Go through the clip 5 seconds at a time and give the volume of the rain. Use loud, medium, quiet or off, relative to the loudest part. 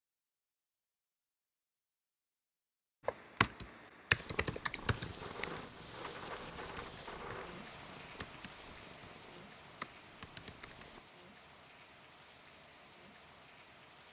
off, loud, medium.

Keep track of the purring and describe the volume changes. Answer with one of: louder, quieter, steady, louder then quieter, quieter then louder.
quieter.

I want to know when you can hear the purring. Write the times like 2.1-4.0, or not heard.
4.2-11.1.